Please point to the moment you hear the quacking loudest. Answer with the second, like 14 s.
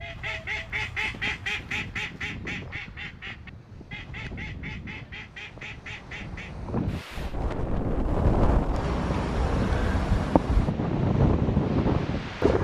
1 s.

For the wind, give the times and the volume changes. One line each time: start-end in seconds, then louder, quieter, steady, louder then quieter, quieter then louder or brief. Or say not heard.
0.0-12.5 louder.